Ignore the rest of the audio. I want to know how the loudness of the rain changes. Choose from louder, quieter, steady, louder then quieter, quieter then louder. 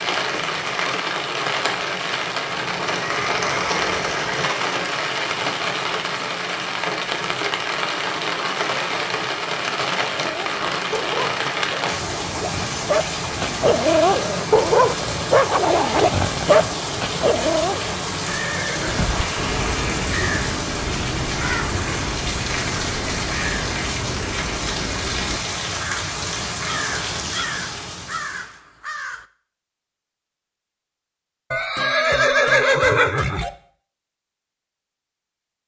steady.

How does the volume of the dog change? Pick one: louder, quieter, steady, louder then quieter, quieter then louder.
louder.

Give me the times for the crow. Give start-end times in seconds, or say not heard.
18.8-29.2.